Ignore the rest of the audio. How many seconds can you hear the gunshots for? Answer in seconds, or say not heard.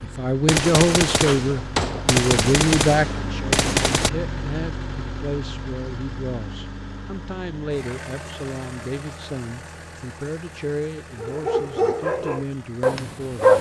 4 s.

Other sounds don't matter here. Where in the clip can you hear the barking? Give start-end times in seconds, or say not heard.
11.2-13.5.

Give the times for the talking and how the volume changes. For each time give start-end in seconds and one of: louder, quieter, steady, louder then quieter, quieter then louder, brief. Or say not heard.
0.0-13.5 quieter.